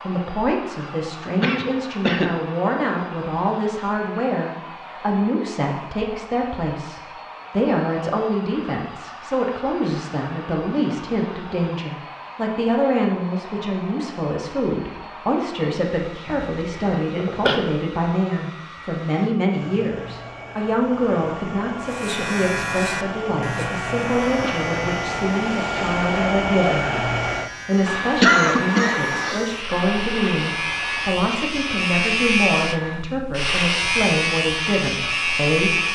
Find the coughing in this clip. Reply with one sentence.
The coughing can be heard from 1.4 to 2.3 s, from 16.2 to 17.6 s and from 28.2 to 29.4 s.